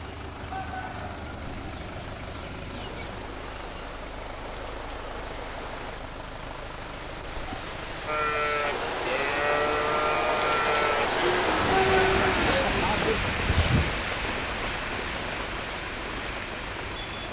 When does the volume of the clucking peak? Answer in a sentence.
The volume of the clucking peaks at 12 seconds.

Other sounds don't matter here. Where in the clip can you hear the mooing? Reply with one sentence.
The mooing can be heard from 8.1 to 13.9 s.